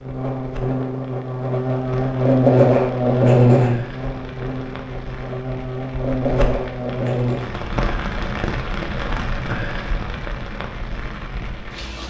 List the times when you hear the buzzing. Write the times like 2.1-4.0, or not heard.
0.0-7.5.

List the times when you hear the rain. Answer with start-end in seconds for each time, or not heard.
0.0-12.0.